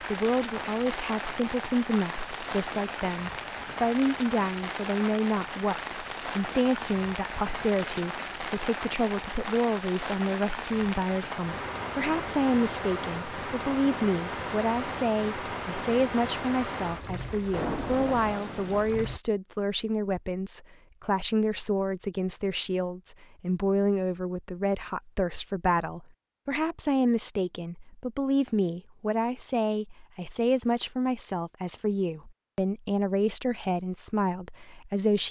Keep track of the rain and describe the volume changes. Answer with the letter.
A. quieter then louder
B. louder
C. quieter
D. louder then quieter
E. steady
E.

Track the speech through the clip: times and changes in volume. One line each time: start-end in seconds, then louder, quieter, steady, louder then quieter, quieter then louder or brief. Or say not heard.
0.0-35.2 steady.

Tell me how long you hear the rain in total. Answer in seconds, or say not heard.
19 s.